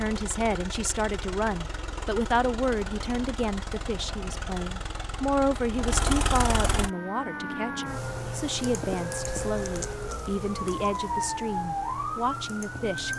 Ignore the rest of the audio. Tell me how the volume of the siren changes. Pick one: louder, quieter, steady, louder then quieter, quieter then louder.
steady.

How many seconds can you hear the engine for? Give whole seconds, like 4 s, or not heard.
7 s.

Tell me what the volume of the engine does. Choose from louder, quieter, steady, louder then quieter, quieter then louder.
louder.